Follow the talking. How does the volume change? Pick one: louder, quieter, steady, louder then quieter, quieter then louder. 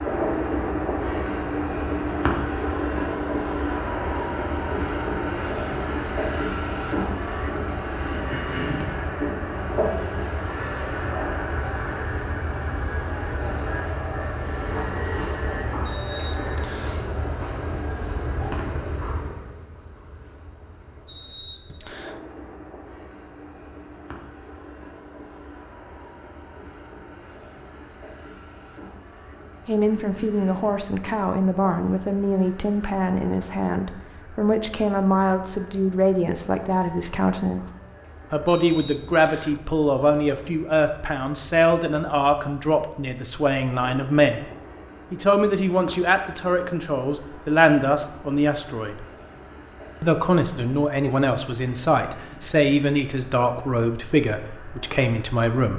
steady.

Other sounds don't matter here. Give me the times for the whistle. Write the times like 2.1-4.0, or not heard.
15.8-16.9, 21.1-22.2, 38.5-39.6.